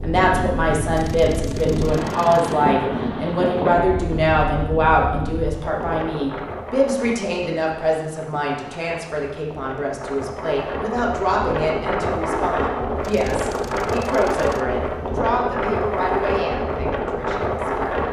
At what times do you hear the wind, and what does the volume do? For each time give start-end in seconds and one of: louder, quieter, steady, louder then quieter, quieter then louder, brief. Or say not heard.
0.0-18.0 quieter then louder.